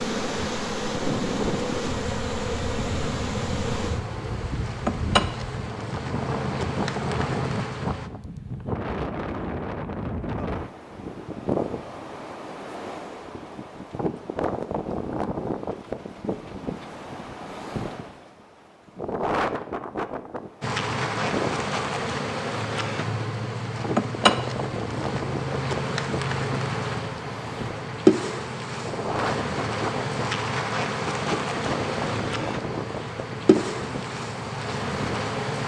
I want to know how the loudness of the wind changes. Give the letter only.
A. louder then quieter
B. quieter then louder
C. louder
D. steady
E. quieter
D.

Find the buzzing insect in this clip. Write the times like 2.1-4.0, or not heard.
0.0-8.1, 20.6-35.6.